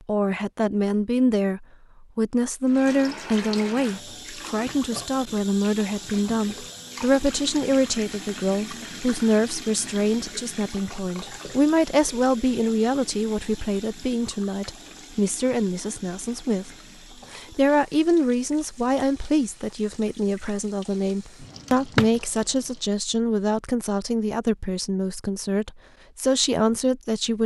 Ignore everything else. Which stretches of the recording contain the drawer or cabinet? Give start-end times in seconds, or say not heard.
21.4-22.2.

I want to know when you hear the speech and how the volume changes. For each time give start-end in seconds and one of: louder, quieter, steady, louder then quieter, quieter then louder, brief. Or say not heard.
0.1-27.4 steady.